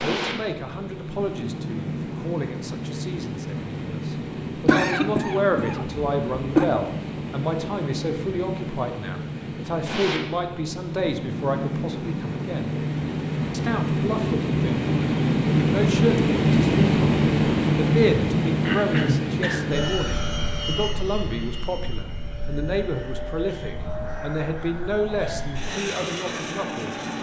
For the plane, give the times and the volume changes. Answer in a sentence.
You can hear the plane from 0.0 to 27.1 s, getting louder then quieter.